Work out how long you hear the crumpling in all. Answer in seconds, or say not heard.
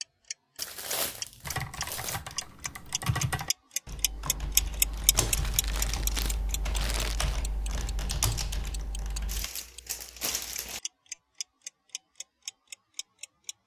6 s.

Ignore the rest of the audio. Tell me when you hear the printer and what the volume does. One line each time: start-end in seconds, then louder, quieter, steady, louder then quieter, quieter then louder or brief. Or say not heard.
not heard.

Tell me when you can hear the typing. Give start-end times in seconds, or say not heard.
1.4-9.5.